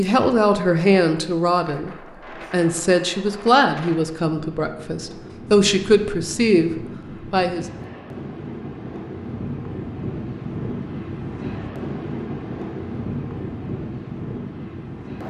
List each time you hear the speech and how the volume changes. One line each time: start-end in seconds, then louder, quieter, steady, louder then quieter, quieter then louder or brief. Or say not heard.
0.0-7.7 steady.